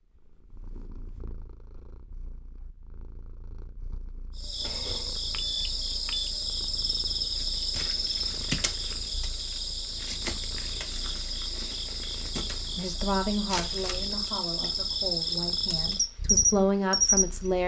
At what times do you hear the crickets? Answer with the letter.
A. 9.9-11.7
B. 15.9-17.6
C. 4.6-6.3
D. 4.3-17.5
D.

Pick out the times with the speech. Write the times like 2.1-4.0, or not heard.
12.8-17.6.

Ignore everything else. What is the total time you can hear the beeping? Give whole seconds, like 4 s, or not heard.
2 s.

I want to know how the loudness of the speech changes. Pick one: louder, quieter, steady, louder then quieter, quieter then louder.
quieter then louder.